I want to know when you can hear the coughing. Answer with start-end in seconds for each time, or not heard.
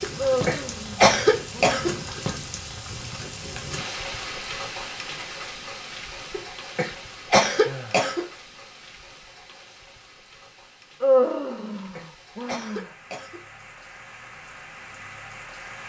0.0-1.9, 6.3-8.2, 11.5-13.4.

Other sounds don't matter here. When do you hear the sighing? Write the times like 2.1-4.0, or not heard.
0.1-1.8, 7.7-8.2, 11.0-12.9.